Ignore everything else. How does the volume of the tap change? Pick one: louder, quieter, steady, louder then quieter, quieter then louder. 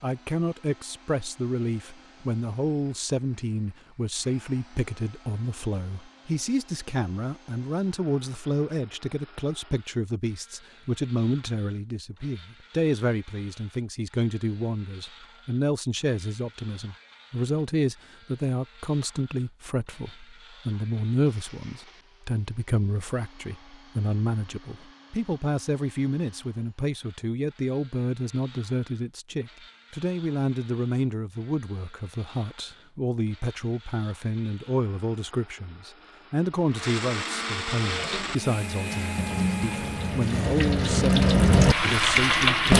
louder.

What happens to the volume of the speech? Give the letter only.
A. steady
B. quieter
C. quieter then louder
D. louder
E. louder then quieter
A.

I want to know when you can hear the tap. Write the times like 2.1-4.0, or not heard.
37.8-42.7.